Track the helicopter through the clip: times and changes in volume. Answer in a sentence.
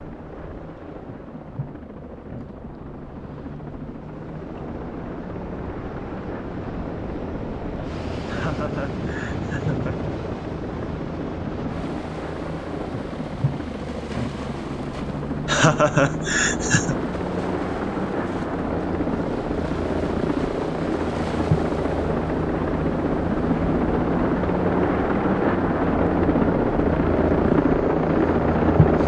You can hear the helicopter from 0.0 to 29.0 s, getting louder.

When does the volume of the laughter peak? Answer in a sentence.
The loudest moment of the laughter is at 16 seconds.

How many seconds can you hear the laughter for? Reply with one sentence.
You can hear the laughter for 3 seconds altogether.